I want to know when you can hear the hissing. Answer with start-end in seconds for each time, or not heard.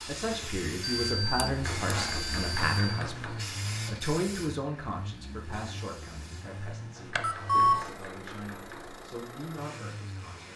0.0-6.5.